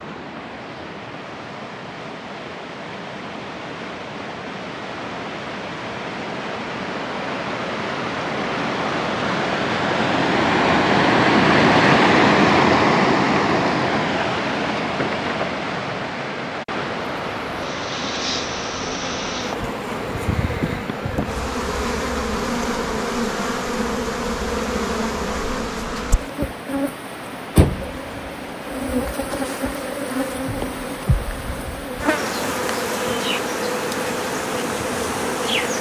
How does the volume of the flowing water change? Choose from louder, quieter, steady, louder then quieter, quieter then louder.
louder then quieter.